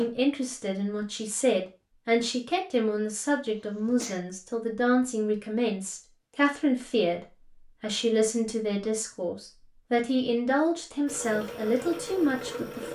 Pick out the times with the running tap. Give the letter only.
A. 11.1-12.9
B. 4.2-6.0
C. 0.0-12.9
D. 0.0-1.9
A.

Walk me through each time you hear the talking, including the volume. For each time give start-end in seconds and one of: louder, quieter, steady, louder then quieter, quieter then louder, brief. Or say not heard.
0.0-12.9 steady.